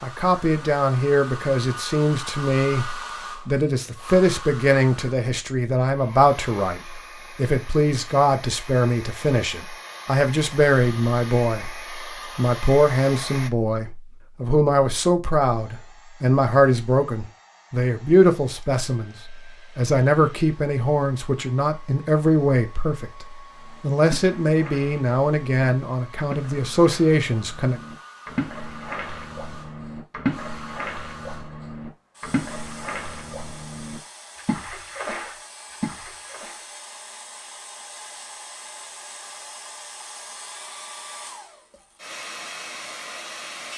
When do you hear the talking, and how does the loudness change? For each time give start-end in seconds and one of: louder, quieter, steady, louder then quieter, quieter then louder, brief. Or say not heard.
0.0-27.8 steady.